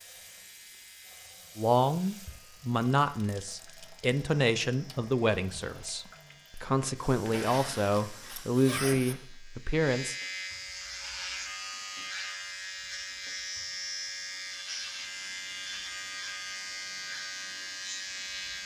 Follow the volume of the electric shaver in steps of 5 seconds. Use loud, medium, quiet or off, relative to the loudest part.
quiet, quiet, loud, loud.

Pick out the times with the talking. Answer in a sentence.
You can hear the talking from 1.6 to 10.2 s.